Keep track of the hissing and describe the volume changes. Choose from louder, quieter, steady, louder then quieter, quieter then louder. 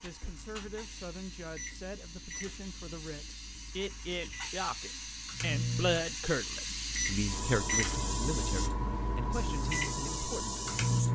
louder.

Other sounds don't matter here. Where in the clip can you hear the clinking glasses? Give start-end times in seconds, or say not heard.
not heard.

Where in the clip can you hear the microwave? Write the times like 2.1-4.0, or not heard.
0.0-11.1.